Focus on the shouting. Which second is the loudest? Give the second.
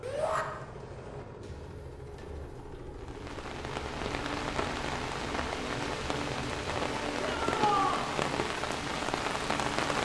8 s.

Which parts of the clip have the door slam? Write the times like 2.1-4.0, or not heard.
not heard.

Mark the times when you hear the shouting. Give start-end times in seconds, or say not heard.
0.0-0.5, 7.2-8.1.